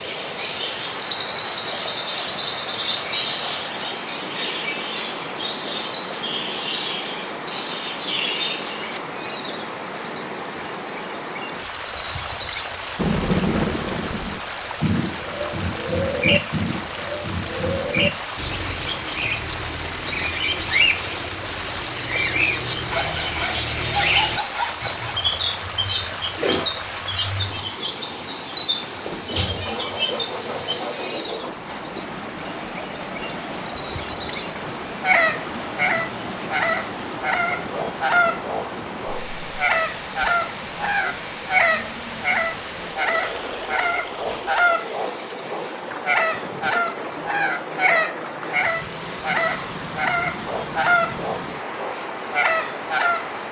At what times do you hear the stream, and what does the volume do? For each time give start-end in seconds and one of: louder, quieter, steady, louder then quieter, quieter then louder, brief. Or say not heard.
0.0-53.4 steady.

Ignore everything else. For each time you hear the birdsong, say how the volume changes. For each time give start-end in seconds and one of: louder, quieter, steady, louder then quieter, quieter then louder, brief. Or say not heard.
0.0-53.4 steady.